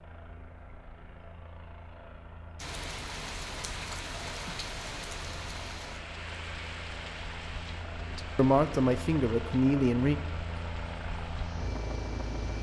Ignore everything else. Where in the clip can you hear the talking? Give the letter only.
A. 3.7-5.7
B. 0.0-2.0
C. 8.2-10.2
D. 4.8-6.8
C.